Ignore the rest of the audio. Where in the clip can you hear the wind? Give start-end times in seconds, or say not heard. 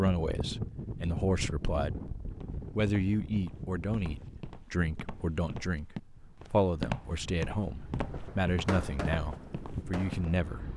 0.0-10.7.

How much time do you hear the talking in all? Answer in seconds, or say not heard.
10 s.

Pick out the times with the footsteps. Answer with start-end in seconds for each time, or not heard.
2.2-10.3.